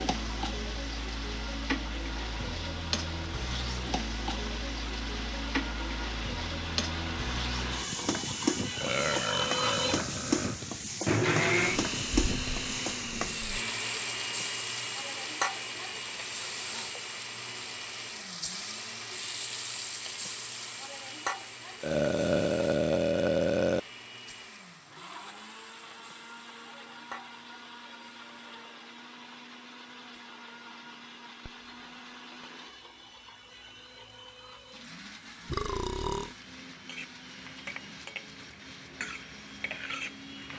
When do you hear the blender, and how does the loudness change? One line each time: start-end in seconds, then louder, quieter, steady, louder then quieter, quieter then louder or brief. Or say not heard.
0.1-40.5 louder then quieter.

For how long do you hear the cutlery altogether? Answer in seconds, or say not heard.
not heard.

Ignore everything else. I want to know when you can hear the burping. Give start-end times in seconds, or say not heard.
8.8-10.6, 21.8-23.8, 35.5-36.4.